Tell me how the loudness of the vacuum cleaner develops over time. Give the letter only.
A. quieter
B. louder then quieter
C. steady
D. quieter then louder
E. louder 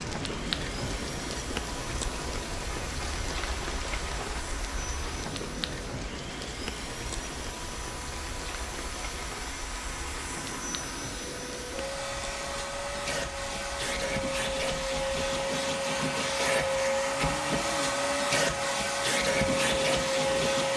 E.